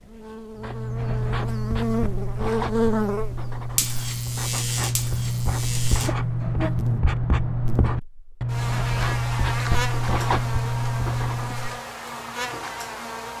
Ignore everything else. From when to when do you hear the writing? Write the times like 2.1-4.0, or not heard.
0.6-11.8.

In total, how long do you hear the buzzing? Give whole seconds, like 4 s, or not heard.
13 s.